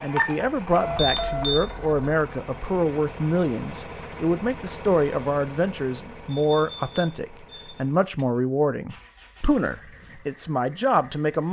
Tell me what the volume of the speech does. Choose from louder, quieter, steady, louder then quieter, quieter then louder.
steady.